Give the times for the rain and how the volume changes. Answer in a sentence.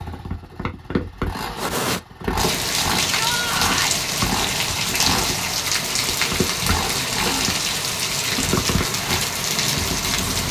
The rain can be heard from 1.6 to 10.4 s, at a steady volume.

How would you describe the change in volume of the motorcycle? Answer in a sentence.
The loudness of the motorcycle stays about the same.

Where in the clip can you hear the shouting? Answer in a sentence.
The shouting can be heard from 3.1 to 4.0 s.